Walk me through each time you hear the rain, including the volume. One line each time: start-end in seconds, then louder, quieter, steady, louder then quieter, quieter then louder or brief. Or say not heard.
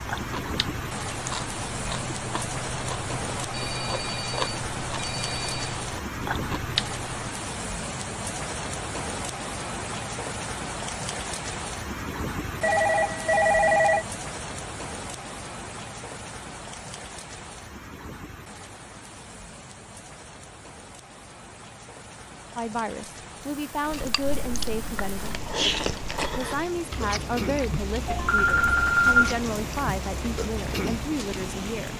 0.0-31.9 quieter then louder.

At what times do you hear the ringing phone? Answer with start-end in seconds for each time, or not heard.
3.5-5.8, 12.6-14.1, 28.1-29.4.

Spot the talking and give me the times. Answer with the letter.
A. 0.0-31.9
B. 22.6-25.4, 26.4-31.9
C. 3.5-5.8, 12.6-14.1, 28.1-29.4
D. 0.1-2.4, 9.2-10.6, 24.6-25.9
B.